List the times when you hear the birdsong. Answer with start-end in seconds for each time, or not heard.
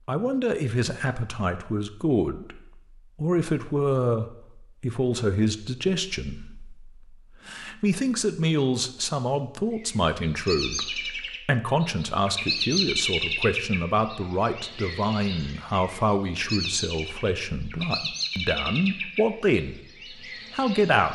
9.7-21.1.